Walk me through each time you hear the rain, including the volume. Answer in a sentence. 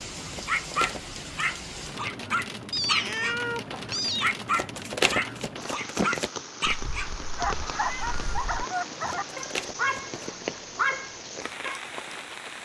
The rain can be heard from 0.0 to 12.6 s, at a steady volume.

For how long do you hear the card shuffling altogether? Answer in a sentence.
The card shuffling can be heard for 4 seconds in total.